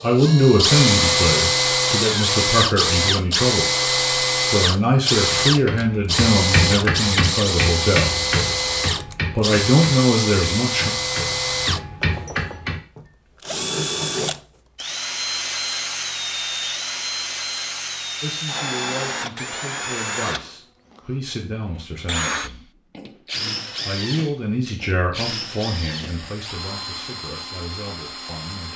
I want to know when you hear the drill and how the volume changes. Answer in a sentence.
The drill can be heard from 0.0 to 28.7 s, getting quieter.